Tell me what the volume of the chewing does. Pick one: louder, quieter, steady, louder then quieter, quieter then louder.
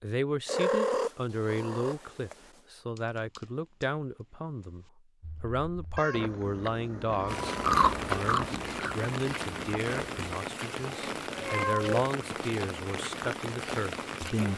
louder then quieter.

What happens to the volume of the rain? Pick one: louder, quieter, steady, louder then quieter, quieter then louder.
steady.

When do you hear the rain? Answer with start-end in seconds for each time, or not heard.
7.2-14.5.